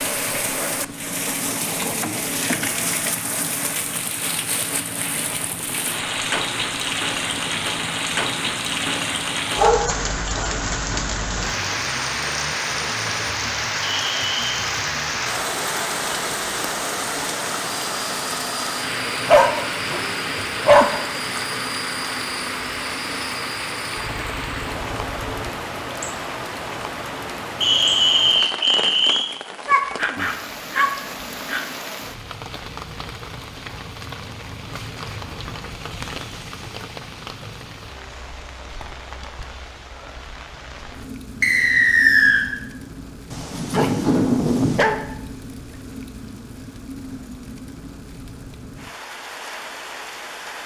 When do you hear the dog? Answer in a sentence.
The dog can be heard from 9.6 to 10.4 s, from 19.2 to 20.9 s, from 29.6 to 31.6 s and from 43.3 to 45.0 s.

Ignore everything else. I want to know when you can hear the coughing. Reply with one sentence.
The coughing can't be heard in this clip.